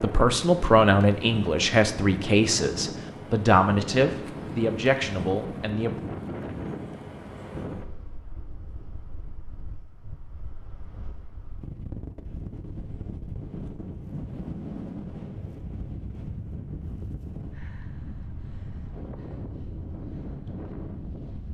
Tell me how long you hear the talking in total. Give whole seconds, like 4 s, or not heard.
6 s.